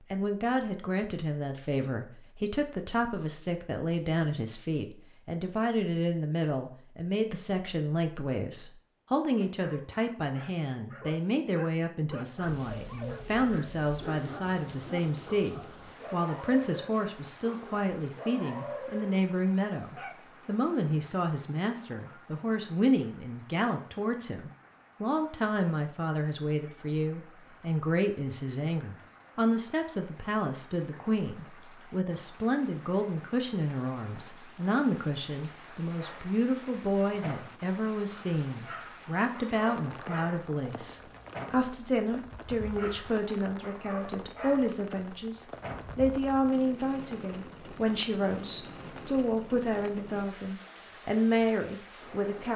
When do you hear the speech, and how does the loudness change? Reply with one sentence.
The speech can be heard from 0.1 to 52.5 s, at a steady volume.